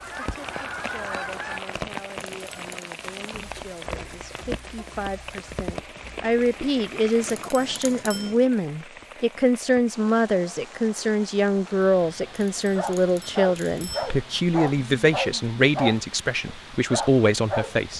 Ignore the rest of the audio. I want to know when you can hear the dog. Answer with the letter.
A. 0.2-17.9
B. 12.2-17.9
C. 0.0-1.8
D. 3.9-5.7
B.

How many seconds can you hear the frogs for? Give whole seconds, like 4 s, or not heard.
not heard.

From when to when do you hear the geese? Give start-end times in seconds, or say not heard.
0.0-1.8.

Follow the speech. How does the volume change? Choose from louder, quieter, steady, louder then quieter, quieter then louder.
louder.